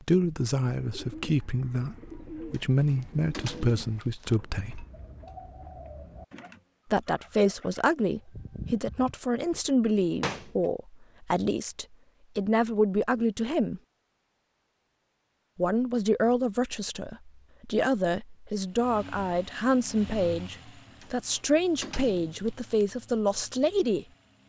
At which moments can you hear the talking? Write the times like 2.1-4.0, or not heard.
0.0-4.8, 6.9-13.8, 15.6-24.1.